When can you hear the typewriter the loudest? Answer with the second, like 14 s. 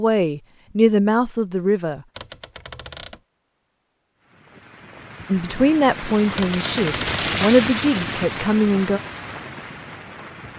7 s.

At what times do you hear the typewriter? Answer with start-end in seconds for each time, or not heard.
2.1-3.2, 6.3-7.2.